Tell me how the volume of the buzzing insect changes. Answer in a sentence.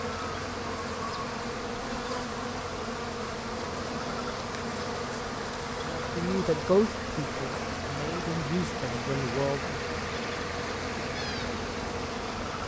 The volume of the buzzing insect stays about the same.